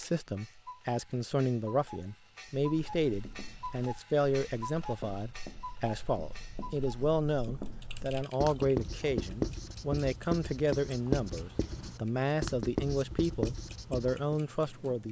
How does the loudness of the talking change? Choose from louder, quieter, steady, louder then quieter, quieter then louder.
steady.